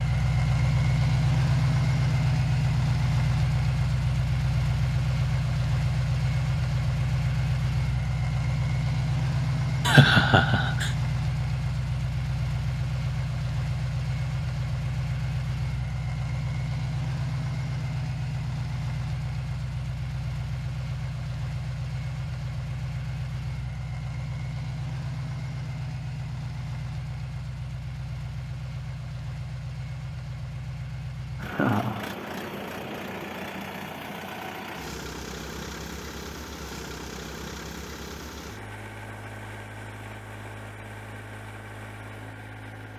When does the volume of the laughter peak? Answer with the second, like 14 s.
10 s.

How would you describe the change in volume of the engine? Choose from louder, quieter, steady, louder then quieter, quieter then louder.
quieter.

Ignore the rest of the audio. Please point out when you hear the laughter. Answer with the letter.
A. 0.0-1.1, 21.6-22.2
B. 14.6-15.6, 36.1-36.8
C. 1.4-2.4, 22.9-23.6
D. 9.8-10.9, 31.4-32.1
D.